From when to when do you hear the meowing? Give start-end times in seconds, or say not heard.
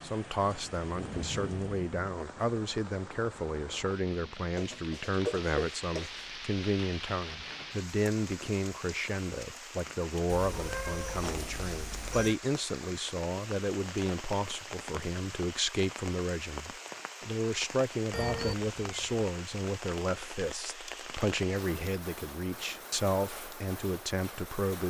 4.5-6.2, 10.3-12.3, 18.1-19.2.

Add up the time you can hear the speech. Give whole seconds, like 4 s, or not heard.
25 s.